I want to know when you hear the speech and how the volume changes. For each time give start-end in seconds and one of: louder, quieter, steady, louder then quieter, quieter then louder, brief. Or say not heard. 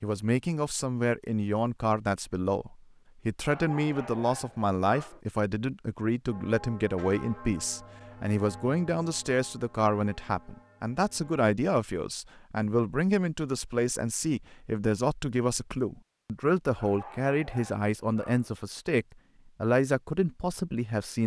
0.0-21.2 steady.